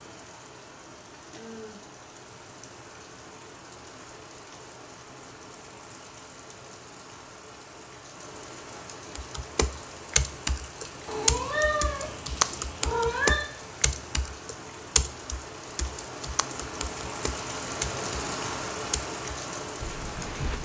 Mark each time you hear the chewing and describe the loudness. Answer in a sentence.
The chewing can't be heard in this clip.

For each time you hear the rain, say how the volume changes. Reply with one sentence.
You can hear the rain from 0.0 to 20.5 s, getting louder.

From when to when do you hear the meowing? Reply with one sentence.
You can hear the meowing from 11.1 to 13.4 s.